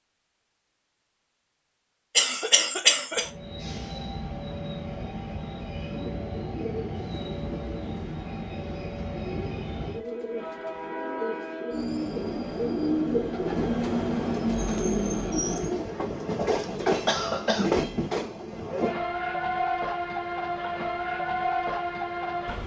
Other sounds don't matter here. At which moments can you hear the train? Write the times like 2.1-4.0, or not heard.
3.1-22.6.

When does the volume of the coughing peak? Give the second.
3 s.